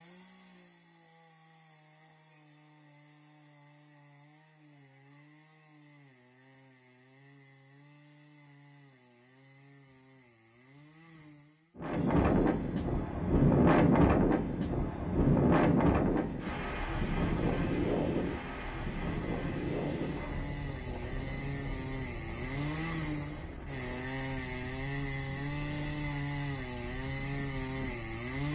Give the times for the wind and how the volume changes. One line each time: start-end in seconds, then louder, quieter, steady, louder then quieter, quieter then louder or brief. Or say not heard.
11.8-28.5 quieter.